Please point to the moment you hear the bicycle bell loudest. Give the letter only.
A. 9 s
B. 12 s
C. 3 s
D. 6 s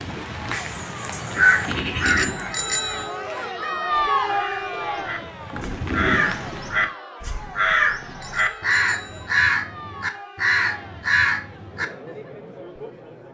C.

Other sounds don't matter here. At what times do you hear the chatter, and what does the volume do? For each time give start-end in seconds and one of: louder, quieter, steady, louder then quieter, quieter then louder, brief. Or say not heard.
0.1-13.2 louder then quieter.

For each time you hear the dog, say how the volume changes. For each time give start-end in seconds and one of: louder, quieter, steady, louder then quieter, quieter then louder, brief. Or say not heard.
not heard.